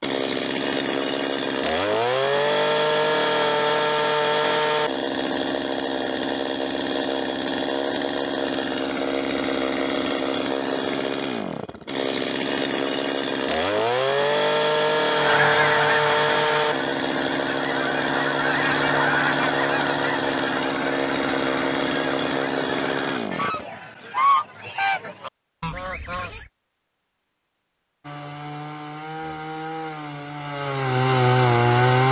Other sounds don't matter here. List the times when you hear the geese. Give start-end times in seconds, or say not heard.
15.1-26.5.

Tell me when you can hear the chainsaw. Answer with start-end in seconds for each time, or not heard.
0.0-23.6, 28.0-32.0.